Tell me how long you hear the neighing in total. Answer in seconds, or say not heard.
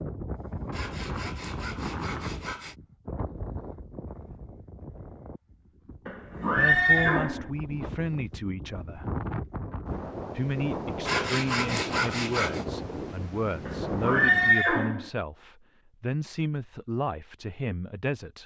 3 s.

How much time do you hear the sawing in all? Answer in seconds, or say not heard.
4 s.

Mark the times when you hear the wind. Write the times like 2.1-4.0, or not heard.
0.0-14.6.